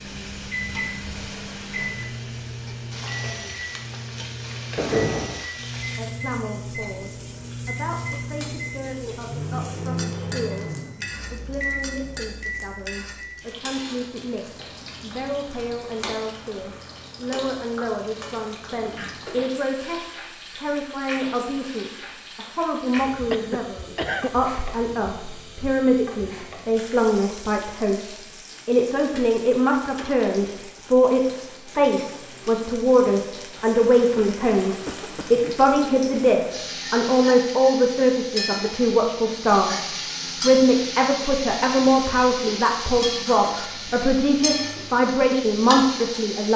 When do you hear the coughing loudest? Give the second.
5 s.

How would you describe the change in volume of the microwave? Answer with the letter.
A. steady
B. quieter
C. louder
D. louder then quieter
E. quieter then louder
A.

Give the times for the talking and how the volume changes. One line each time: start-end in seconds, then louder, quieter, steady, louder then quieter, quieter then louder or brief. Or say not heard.
6.0-46.5 louder.